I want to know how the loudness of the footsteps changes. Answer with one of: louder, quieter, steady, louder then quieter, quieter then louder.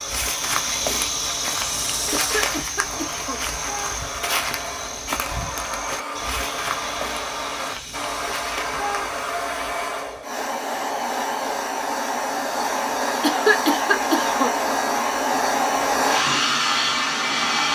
quieter.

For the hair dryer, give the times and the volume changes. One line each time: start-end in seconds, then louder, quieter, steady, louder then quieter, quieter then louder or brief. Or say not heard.
0.0-17.6 louder.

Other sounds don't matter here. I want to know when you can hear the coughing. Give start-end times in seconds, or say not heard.
2.1-3.5, 13.2-14.6.